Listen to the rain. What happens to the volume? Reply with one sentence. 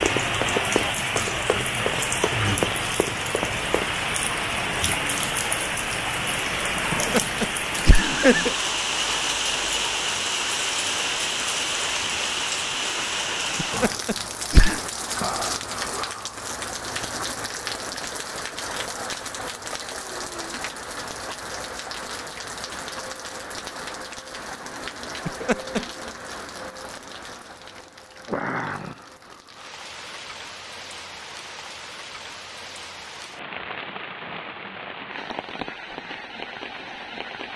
The loudness of the rain goes down.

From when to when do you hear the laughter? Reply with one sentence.
You can hear the laughter from 6.9 to 8.6 s, from 13.6 to 14.8 s and from 25.2 to 25.8 s.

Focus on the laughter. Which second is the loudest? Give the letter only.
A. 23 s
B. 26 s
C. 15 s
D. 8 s
D.